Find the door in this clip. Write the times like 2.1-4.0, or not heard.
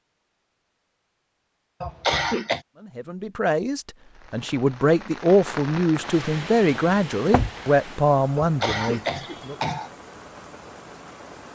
6.8-7.5.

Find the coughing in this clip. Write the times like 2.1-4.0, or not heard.
1.8-2.6, 8.3-9.9.